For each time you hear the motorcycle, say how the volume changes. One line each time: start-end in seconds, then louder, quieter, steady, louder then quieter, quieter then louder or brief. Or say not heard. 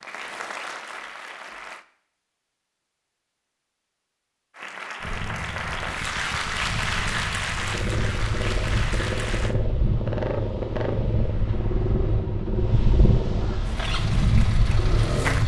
5.0-15.4 louder.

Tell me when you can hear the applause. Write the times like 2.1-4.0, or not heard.
0.0-1.9, 4.5-9.6, 13.6-15.4.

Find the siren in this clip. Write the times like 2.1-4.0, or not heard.
not heard.